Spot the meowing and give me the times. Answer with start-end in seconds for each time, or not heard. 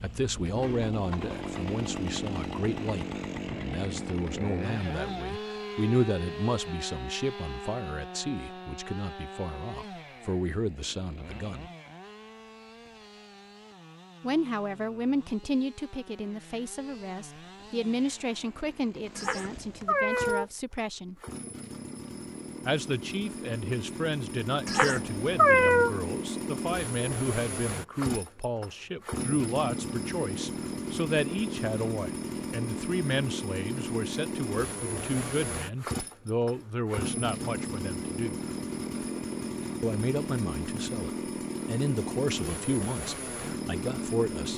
19.1-20.4, 24.6-25.9.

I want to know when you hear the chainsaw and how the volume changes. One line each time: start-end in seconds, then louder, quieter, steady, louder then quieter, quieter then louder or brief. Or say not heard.
0.0-44.5 quieter then louder.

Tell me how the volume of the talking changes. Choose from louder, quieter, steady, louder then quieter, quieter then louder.
steady.